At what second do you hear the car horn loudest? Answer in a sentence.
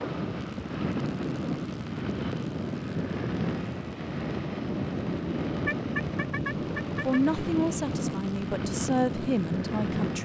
The loudest moment of the car horn is at 6 seconds.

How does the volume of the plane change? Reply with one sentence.
The loudness of the plane stays about the same.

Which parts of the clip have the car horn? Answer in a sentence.
The car horn can be heard from 5.7 to 7.2 s.